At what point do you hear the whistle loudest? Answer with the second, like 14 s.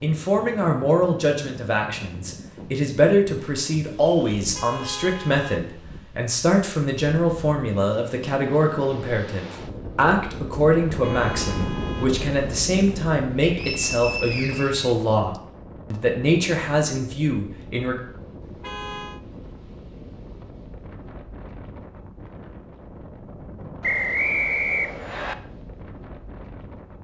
24 s.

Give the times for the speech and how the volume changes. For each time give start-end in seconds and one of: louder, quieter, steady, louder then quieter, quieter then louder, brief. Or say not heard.
0.0-18.0 steady.